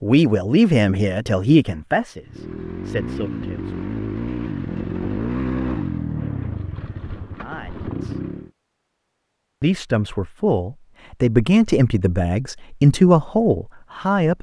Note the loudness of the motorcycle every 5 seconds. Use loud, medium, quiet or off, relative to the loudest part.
loud, loud, off.